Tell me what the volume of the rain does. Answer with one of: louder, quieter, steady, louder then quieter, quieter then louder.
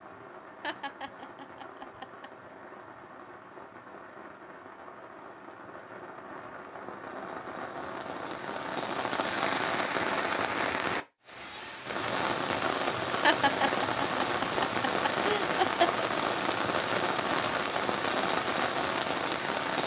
louder.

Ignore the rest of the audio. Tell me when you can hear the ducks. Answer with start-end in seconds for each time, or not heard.
not heard.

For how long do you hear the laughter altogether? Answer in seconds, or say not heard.
4 s.